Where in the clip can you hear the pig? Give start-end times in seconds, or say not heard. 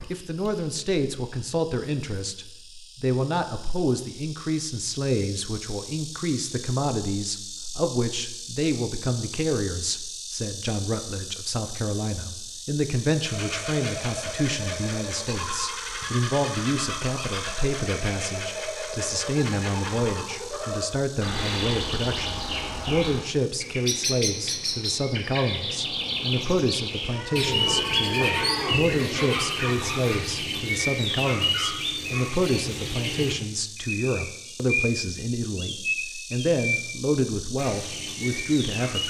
not heard.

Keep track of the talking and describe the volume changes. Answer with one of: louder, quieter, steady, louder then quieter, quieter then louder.
steady.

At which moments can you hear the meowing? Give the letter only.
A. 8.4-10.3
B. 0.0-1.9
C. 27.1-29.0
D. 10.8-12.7
C.